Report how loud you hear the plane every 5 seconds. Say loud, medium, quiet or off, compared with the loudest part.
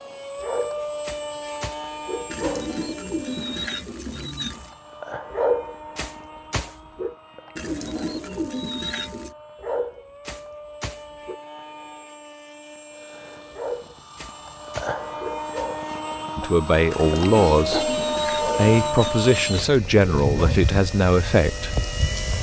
medium, quiet, medium, loud, loud.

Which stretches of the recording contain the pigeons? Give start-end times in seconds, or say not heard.
2.2-4.8, 7.5-9.3, 16.9-19.7.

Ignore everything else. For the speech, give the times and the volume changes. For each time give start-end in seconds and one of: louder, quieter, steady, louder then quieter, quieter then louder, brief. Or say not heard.
16.4-21.8 quieter then louder.